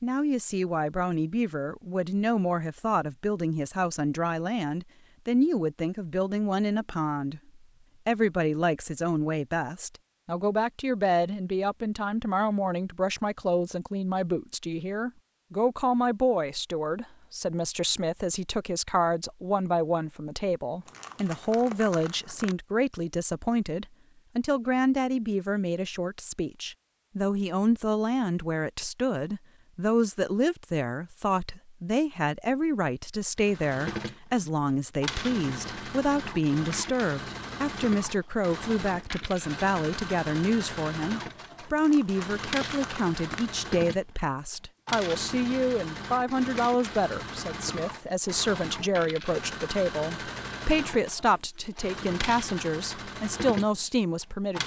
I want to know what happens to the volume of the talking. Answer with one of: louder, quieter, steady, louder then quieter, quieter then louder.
steady.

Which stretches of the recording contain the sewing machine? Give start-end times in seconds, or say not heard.
33.4-54.6.